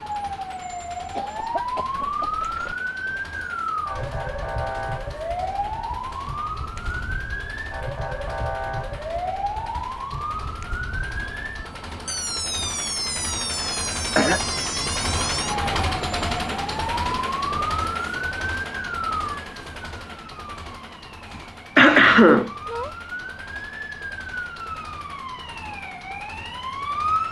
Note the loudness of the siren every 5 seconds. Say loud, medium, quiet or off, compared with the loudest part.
loud, loud, loud, loud, medium, loud.